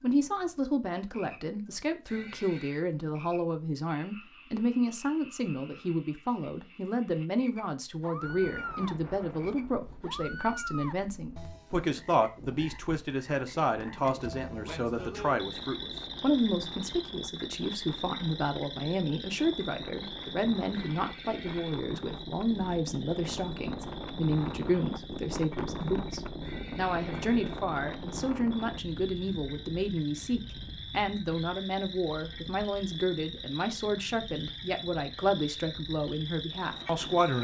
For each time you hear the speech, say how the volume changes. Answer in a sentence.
You can hear the speech from 0.0 to 37.3 s, at a steady volume.